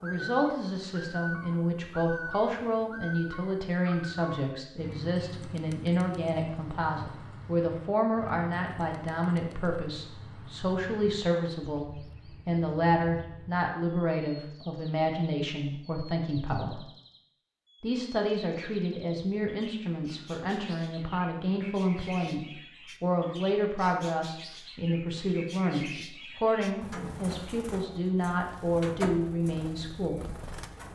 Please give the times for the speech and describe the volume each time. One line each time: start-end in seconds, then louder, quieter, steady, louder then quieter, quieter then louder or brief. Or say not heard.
0.0-16.9 steady
17.8-30.2 steady.